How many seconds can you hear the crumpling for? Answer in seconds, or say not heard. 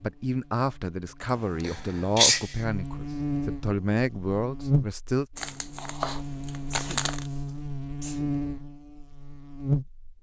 2 s.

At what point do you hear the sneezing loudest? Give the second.
2 s.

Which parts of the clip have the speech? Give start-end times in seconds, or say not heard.
0.0-5.2.